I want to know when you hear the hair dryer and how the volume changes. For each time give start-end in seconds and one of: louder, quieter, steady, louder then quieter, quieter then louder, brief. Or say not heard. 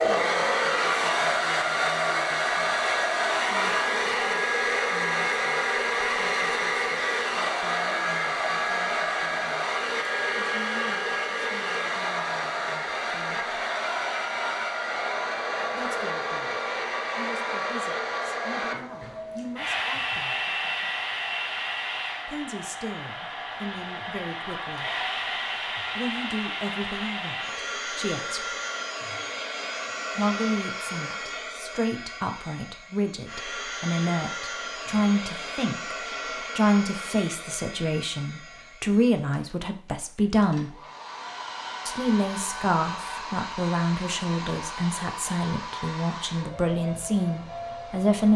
0.0-48.3 quieter.